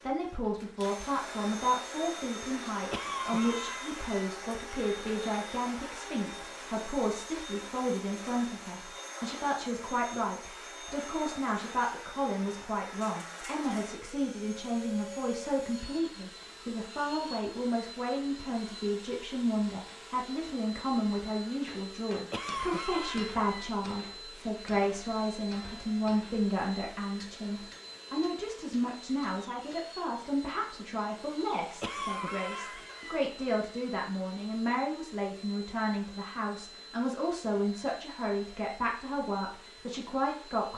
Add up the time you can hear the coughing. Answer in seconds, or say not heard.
4 s.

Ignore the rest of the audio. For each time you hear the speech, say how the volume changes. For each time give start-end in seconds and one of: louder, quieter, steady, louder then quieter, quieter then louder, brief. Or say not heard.
0.0-40.7 steady.